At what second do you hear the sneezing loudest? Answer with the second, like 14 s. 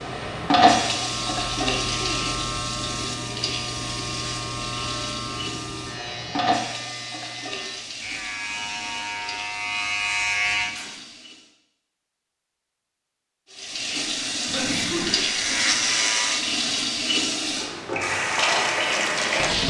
15 s.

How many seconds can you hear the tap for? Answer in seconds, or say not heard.
18 s.